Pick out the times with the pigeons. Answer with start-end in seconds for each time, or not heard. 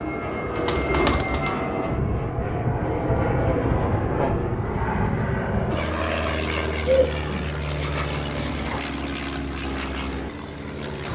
0.0-1.5, 6.8-8.8.